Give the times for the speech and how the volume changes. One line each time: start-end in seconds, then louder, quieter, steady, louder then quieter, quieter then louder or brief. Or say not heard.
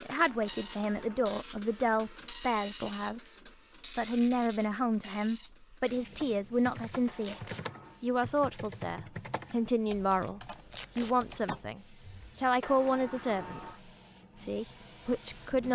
0.0-15.6 steady.